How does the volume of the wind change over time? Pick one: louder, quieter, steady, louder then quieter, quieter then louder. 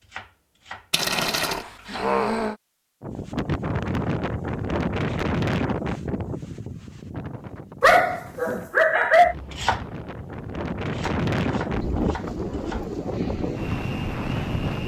quieter then louder.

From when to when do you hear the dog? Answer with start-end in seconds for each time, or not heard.
0.9-2.5, 7.8-9.3.